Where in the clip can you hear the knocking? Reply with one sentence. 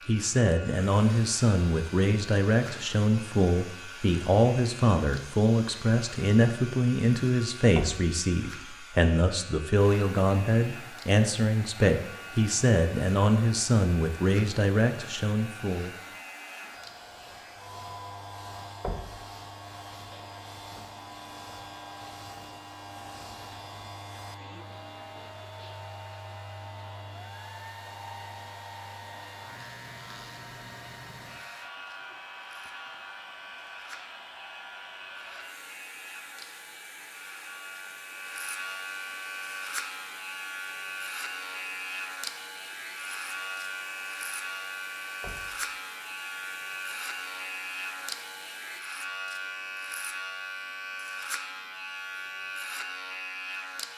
You can hear the knocking from 7.8 to 8.2 s, from 18.8 to 19.2 s and from 45.2 to 45.6 s.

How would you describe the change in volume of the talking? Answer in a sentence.
The volume of the talking stays about the same.